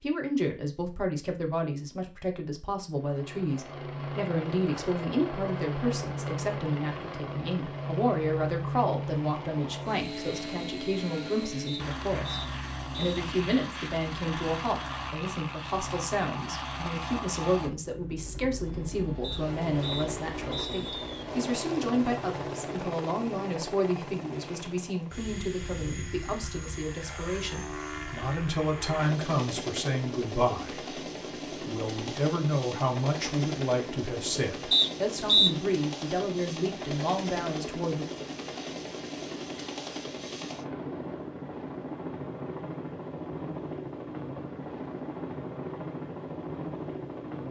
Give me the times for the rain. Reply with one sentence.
You can't hear the rain here.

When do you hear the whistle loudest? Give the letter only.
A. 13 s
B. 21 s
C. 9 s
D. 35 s
D.